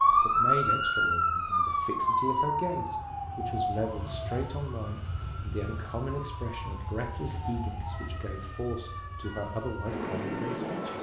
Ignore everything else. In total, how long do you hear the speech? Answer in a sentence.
The speech can be heard for 11 seconds in total.